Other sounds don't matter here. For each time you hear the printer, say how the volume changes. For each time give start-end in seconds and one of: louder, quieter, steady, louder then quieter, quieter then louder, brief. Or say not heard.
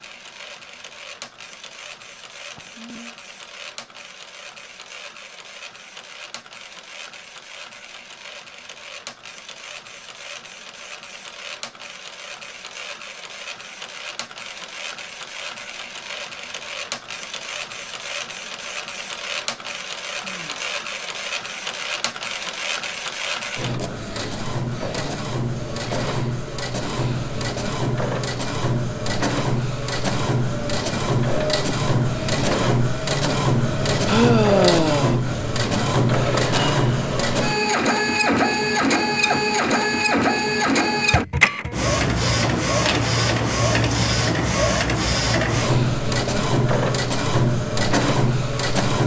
0.0-49.0 louder.